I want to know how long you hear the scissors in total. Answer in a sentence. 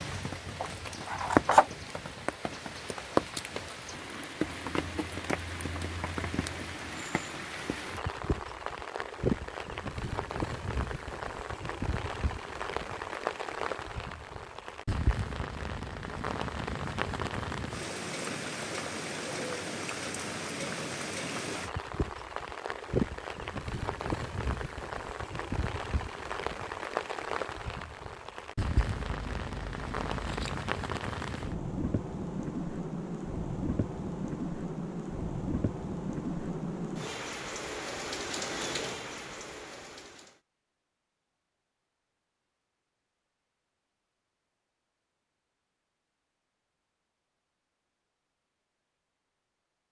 You can hear the scissors for 3 seconds altogether.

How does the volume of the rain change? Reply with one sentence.
The loudness of the rain stays about the same.